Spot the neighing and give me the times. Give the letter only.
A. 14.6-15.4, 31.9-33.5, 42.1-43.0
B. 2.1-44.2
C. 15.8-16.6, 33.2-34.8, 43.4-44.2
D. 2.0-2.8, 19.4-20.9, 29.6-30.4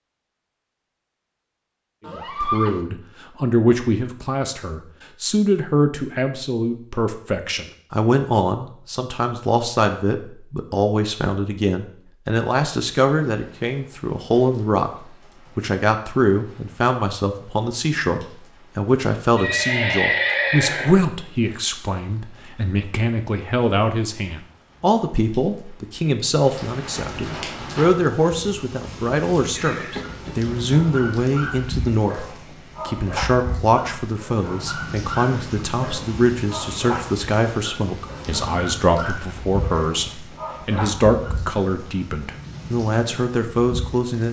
D.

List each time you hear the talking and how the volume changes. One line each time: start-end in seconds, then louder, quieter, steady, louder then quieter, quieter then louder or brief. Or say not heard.
2.1-44.2 steady.